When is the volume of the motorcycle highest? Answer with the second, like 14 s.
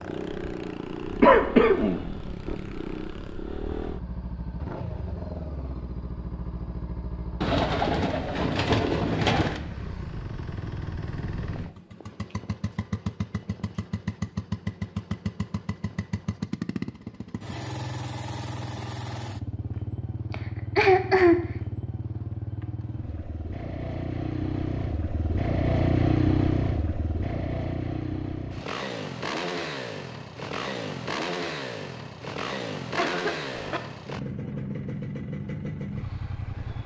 26 s.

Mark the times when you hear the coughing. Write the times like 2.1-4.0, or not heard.
1.2-2.0, 20.3-21.4, 33.0-33.8.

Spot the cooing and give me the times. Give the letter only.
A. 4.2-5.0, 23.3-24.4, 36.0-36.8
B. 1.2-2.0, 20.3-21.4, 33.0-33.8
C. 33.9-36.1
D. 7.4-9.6
D.